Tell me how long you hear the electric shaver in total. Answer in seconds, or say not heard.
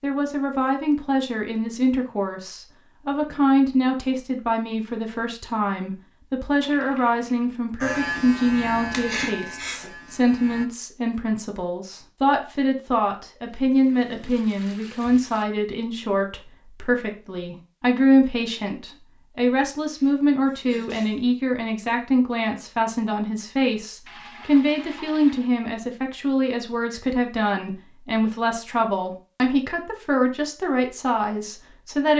3 s.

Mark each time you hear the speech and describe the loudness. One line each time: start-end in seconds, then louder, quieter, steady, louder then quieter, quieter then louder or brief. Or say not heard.
0.0-32.1 steady.